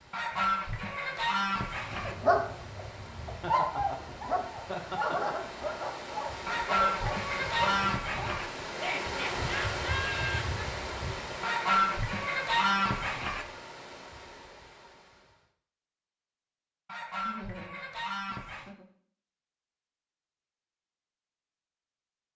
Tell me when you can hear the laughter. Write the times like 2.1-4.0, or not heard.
3.4-5.3, 8.7-10.6, 17.2-18.9.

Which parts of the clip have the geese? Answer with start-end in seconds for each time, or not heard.
0.1-2.1, 6.5-8.4, 11.4-13.4, 16.9-18.8.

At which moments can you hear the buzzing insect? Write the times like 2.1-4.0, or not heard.
not heard.